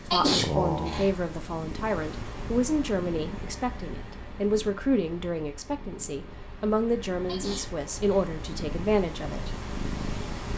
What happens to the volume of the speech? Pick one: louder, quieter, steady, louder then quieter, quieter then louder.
steady.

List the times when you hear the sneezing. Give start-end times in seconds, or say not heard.
0.1-1.1, 7.2-8.2.